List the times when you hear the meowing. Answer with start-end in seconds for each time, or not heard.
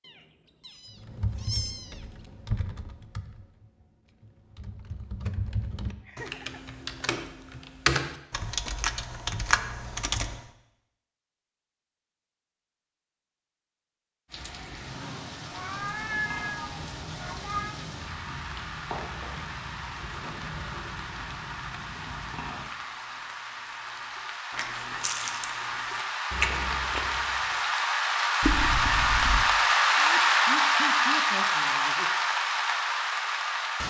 0.0-2.0, 15.5-17.8, 28.4-29.4.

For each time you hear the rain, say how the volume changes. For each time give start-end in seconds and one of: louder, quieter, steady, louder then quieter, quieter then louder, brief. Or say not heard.
14.2-33.8 louder.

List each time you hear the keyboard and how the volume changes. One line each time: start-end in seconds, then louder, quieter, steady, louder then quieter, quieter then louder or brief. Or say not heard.
1.0-10.4 quieter then louder.